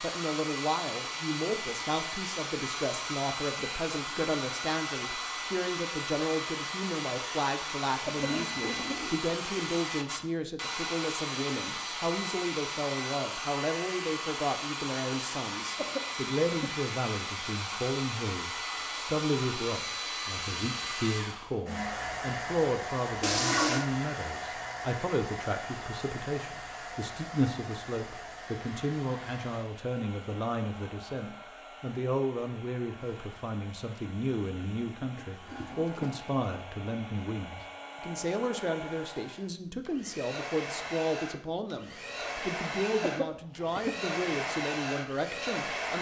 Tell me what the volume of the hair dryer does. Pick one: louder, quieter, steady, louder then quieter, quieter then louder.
quieter then louder.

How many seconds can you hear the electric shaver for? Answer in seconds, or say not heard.
not heard.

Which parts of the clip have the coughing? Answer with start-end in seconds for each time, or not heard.
8.1-9.1, 15.8-16.8, 43.0-44.0.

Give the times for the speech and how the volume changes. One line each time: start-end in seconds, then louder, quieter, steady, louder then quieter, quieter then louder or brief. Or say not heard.
0.0-45.9 steady.